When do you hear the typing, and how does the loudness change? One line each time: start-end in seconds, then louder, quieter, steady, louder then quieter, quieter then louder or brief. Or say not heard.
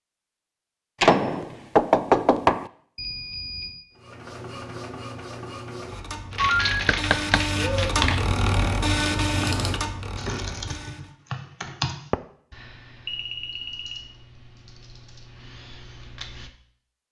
6.3-16.5 quieter.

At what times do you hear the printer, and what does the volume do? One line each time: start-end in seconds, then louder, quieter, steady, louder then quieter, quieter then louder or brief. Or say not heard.
4.0-11.1 louder then quieter.